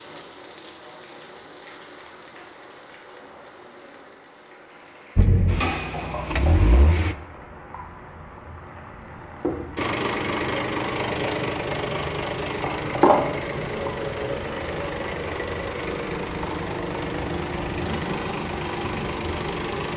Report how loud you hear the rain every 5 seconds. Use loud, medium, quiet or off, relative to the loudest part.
quiet, medium, loud, medium.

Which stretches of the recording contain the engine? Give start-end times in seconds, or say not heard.
5.2-7.2, 9.8-19.9.